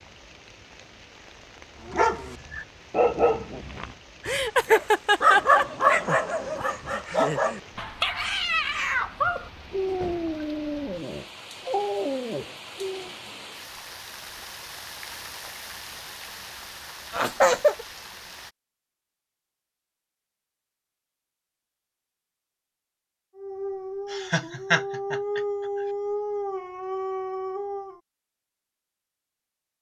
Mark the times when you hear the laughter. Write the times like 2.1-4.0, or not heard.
4.2-5.7, 17.1-17.9, 24.1-25.4.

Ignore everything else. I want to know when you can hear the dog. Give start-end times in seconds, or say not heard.
1.8-13.1, 23.4-28.0.